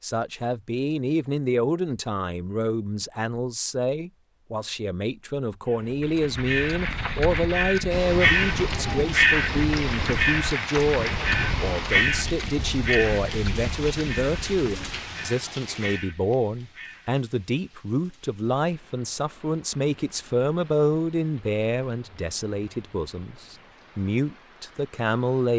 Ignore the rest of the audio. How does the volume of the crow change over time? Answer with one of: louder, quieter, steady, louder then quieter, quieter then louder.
louder then quieter.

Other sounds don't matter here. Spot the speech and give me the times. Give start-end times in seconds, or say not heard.
0.0-25.5.